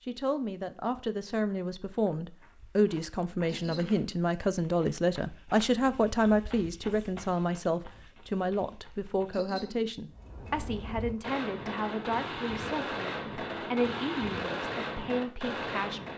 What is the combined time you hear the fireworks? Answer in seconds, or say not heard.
6 s.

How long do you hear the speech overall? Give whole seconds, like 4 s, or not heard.
16 s.